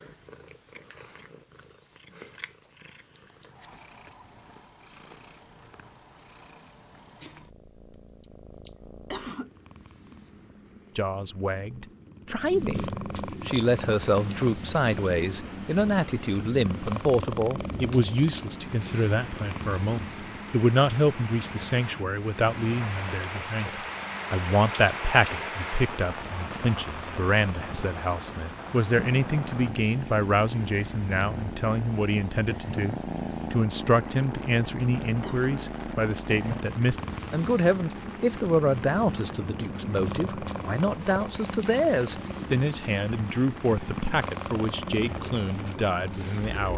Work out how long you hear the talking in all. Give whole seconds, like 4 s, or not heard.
35 s.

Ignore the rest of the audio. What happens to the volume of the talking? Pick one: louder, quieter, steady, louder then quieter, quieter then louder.
steady.